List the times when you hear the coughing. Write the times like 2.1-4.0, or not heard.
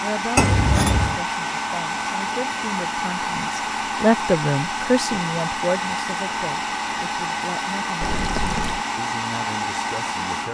not heard.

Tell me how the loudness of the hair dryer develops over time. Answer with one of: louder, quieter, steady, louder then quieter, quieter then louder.
steady.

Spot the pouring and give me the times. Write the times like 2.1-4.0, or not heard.
0.3-1.2, 8.0-8.8.